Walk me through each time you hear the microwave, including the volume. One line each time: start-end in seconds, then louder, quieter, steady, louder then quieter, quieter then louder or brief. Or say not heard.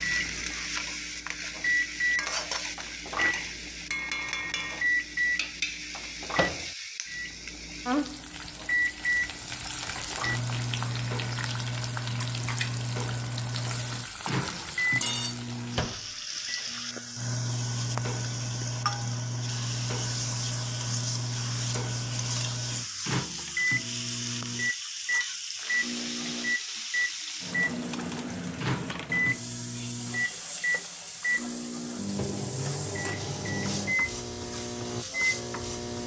0.0-36.0 steady.